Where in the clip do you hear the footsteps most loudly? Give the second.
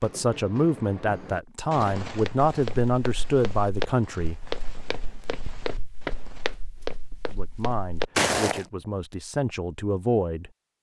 8 s.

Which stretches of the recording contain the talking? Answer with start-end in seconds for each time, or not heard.
0.0-4.5, 7.2-10.5.